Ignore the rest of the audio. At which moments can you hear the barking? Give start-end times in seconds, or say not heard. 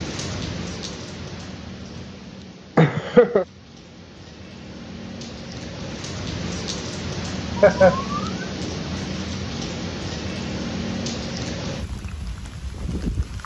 not heard.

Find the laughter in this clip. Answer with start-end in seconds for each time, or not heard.
2.8-3.5, 7.5-8.3.